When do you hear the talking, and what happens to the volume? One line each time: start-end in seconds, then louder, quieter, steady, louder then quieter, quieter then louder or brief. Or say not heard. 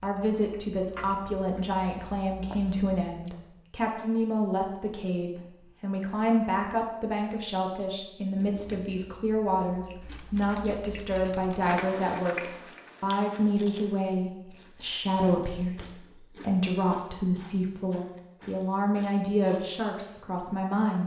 0.0-21.0 steady.